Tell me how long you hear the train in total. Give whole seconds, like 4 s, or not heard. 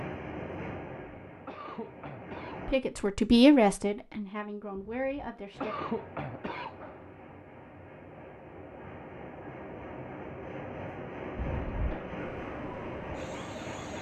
11 s.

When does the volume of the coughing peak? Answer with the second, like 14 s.
6 s.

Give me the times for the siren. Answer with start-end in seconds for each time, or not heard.
12.2-13.9.